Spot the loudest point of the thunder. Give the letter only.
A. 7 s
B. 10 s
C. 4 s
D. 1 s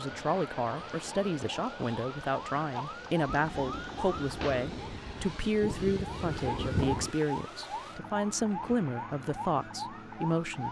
A.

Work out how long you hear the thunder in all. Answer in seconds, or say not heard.
4 s.